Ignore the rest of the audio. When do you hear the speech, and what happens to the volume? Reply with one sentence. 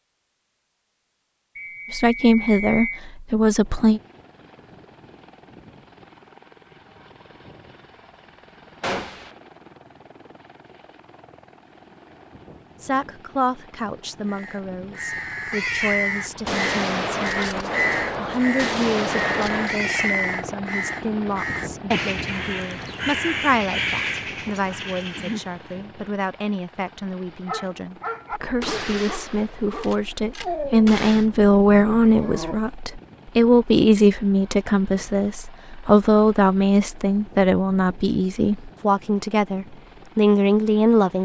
You can hear the speech briefly from 1.9 to 4.0 s; and from 12.8 to 41.1 s, getting louder.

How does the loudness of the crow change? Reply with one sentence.
The volume of the crow stays about the same.